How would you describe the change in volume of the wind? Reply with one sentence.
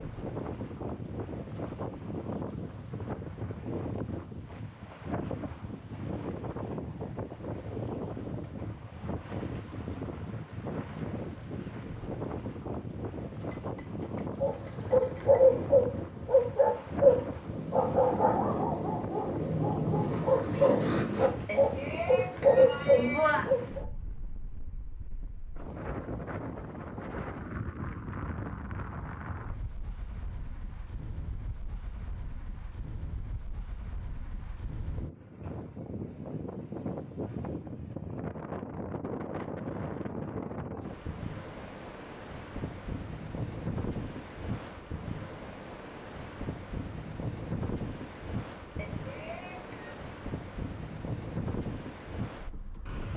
The volume of the wind stays about the same.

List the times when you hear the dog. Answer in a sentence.
You can hear the dog from 14.4 to 23.9 s.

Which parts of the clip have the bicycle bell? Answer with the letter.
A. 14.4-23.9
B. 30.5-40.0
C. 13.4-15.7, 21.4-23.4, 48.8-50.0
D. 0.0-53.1
C.